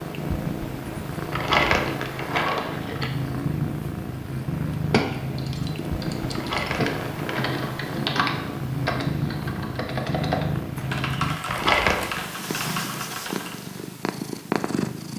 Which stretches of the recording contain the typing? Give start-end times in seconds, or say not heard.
4.8-13.6.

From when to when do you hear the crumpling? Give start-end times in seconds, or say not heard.
1.3-3.1, 6.3-7.5, 11.4-12.2.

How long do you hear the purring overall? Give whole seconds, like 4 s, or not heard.
15 s.